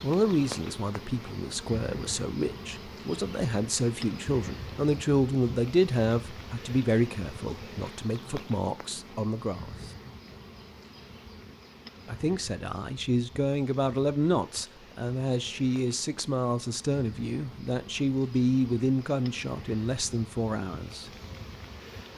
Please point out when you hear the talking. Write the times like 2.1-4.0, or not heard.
0.0-9.9, 12.1-21.1.